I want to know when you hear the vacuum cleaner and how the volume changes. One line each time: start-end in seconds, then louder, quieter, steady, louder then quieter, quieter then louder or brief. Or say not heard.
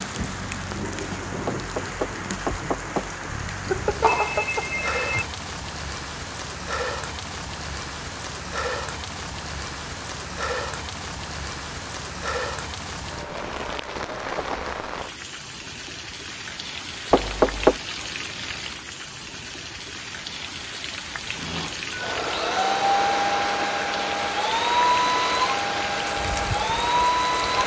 21.4-27.6 steady.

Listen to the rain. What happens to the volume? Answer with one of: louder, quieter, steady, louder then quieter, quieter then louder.
steady.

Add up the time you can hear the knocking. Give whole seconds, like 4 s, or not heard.
2 s.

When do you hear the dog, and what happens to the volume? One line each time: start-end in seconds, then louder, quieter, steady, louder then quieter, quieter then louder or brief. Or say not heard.
not heard.